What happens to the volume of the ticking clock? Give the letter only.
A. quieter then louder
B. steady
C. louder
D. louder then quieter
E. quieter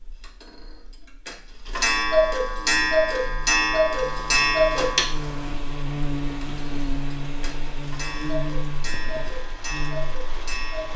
D.